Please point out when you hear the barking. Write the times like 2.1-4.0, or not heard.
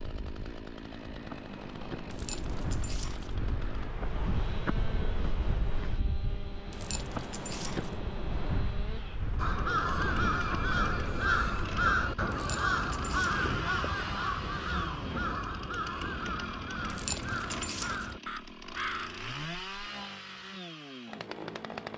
2.1-3.4, 6.7-8.0, 12.3-13.3, 16.9-18.1.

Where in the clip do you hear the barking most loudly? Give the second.
17 s.